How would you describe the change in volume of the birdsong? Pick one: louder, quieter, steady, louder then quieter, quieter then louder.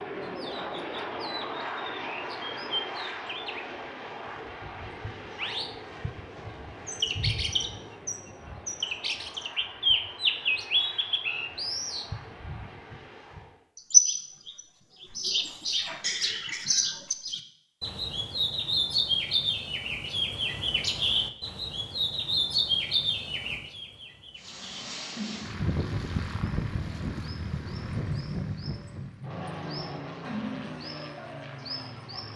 louder then quieter.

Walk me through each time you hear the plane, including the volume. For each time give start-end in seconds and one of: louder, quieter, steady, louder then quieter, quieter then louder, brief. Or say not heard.
0.0-13.7 quieter
24.4-32.3 quieter.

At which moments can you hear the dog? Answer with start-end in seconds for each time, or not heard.
not heard.